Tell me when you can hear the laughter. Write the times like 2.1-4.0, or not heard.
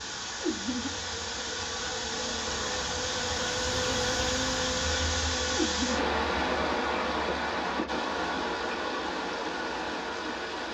0.4-1.0, 5.5-6.0.